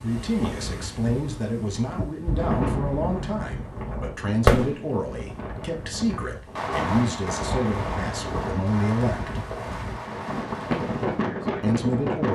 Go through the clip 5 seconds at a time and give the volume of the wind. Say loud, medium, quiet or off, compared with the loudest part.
medium, medium, loud.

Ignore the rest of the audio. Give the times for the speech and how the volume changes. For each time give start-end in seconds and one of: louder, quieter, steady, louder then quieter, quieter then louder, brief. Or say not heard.
0.0-9.4 steady
11.6-12.3 brief.